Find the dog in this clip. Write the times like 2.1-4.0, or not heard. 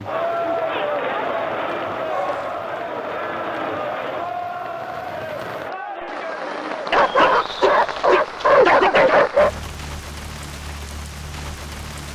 1.9-2.6, 6.9-9.6.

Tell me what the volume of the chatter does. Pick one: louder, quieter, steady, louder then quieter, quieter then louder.
quieter.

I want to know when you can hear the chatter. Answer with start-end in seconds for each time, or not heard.
0.0-7.3.